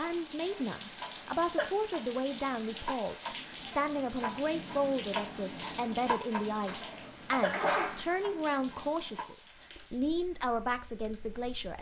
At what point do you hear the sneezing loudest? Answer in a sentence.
The volume of the sneezing peaks at 8 seconds.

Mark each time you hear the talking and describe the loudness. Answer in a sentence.
The talking can be heard from 0.0 to 11.7 s, at a steady volume.